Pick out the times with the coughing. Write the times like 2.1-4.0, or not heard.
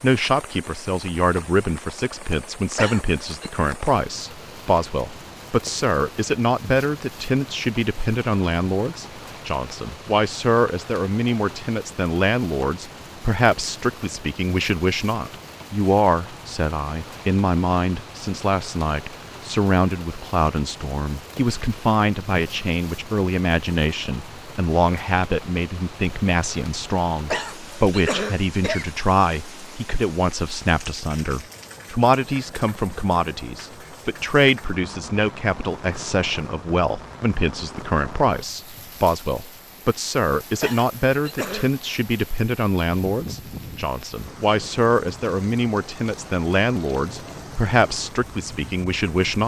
2.8-3.5, 27.3-28.9, 40.6-41.8.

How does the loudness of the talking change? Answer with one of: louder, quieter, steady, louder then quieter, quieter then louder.
steady.